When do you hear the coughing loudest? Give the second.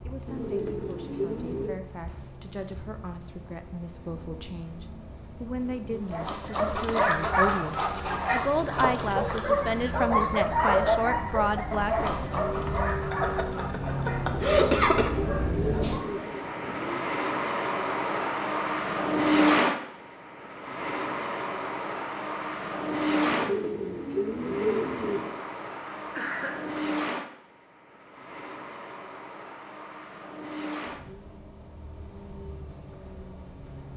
15 s.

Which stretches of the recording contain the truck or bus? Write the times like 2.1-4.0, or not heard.
0.0-33.9.